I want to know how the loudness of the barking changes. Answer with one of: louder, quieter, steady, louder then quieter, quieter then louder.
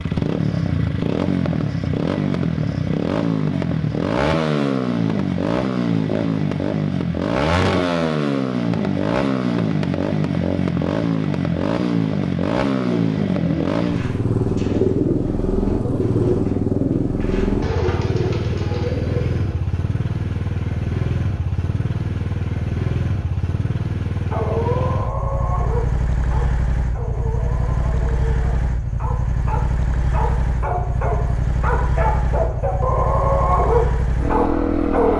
quieter then louder.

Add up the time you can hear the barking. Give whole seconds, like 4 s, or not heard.
11 s.